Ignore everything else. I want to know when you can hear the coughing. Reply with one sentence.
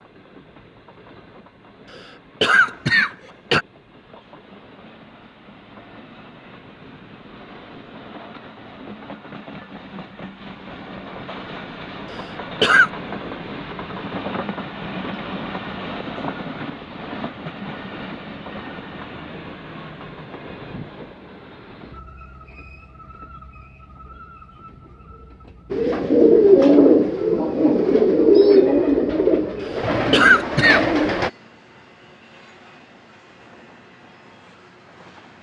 You can hear the coughing from 1.9 to 3.6 s, from 12.1 to 12.9 s and from 29.6 to 30.9 s.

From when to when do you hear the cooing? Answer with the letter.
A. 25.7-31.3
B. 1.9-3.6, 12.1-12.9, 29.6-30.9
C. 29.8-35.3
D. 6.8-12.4
A.